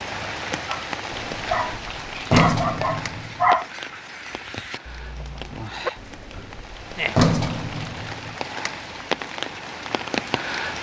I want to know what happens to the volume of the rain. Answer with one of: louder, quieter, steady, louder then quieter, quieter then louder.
quieter then louder.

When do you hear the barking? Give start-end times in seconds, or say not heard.
0.7-5.9.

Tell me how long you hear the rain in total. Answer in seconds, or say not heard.
11 s.